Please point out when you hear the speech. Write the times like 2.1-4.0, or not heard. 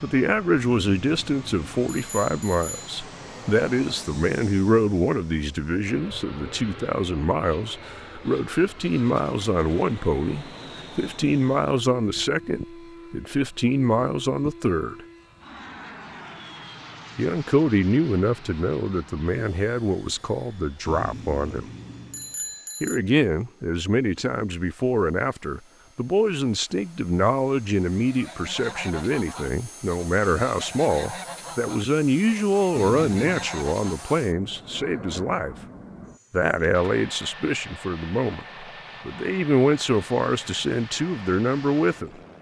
0.0-15.0, 17.1-21.6, 22.8-35.5, 36.3-42.1.